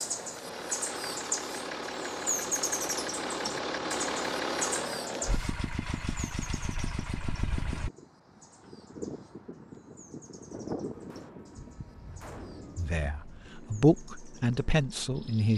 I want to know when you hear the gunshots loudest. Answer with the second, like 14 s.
12 s.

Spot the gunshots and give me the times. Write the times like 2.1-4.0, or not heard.
10.9-12.9.